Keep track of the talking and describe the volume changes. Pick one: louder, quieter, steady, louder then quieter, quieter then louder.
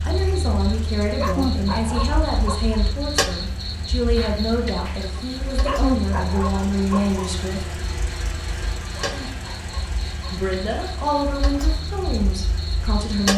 steady.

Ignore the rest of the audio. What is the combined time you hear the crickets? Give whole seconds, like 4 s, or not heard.
13 s.